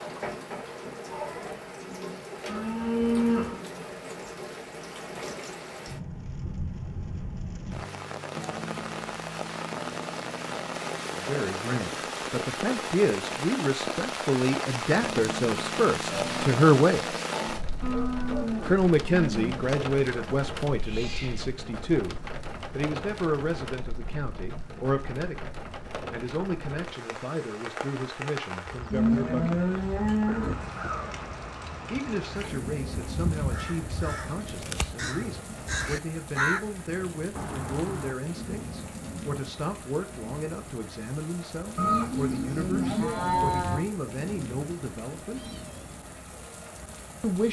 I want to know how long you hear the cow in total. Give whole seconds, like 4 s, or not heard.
7 s.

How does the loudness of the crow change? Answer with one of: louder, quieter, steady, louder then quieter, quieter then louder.
louder.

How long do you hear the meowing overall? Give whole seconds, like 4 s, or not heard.
2 s.